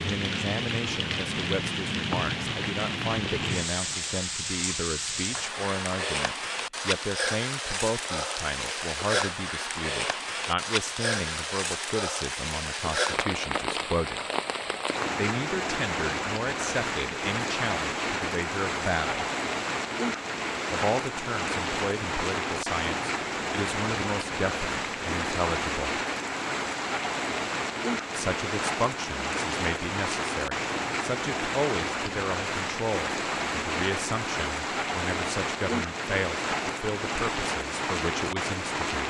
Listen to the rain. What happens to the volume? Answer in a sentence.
The loudness of the rain stays about the same.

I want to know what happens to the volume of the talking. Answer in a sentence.
The loudness of the talking stays about the same.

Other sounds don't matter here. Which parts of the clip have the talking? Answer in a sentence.
You can hear the talking from 0.0 to 14.2 s, from 15.2 to 19.2 s, from 20.7 to 26.0 s and from 28.1 to 39.0 s.